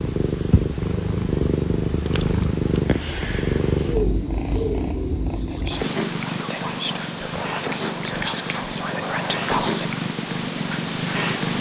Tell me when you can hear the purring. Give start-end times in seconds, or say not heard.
0.0-11.5.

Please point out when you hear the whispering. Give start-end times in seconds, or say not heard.
5.5-9.9.